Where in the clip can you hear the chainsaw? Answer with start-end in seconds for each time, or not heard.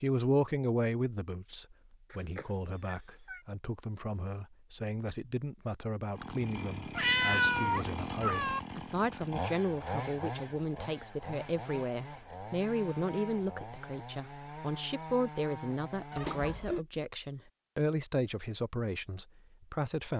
6.2-16.6.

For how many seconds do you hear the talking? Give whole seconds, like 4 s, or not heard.
20 s.